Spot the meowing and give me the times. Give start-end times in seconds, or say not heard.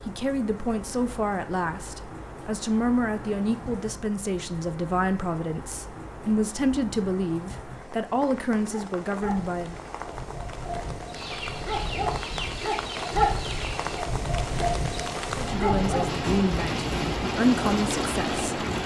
not heard.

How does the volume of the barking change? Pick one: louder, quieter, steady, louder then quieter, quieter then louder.
louder.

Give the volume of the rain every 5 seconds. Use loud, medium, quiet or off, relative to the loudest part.
quiet, quiet, medium, loud.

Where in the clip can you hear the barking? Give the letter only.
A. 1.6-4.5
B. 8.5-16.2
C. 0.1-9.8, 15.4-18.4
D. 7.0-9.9
B.